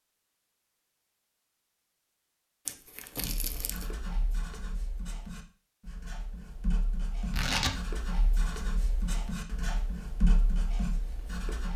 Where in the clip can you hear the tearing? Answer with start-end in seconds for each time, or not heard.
2.6-3.9, 7.3-7.8.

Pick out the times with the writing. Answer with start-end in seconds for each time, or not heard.
3.1-11.7.